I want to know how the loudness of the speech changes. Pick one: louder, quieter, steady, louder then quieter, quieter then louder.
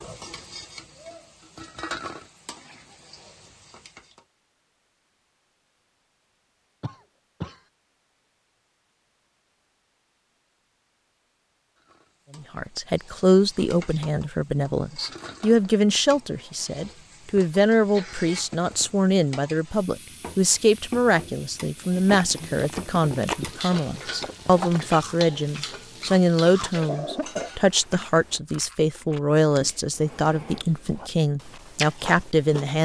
steady.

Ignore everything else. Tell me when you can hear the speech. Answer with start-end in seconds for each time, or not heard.
12.3-32.7.